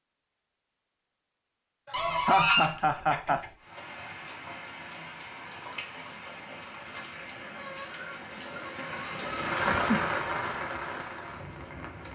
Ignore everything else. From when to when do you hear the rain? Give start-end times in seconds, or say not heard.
3.5-12.1.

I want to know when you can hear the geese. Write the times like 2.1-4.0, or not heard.
1.9-3.5, 7.5-9.2.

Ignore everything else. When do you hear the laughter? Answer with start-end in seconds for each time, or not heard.
1.9-3.5, 9.2-10.2.